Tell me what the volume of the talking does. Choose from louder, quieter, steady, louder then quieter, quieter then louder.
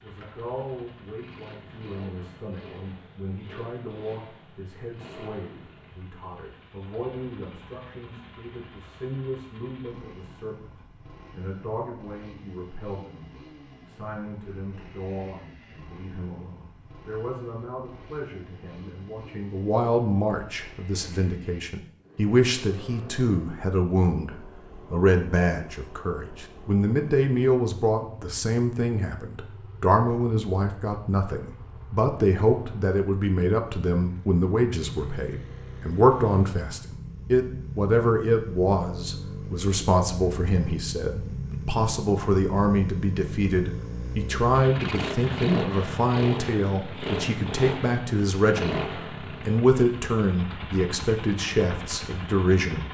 louder.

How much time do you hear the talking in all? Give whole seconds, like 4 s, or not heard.
53 s.